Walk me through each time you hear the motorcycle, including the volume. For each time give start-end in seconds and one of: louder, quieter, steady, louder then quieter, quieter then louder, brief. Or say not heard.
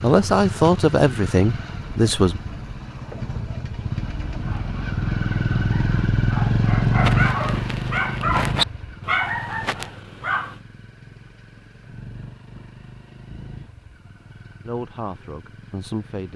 0.0-16.3 louder then quieter.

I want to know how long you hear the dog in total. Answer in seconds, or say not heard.
6 s.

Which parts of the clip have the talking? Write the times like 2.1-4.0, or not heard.
0.0-2.4, 14.7-16.3.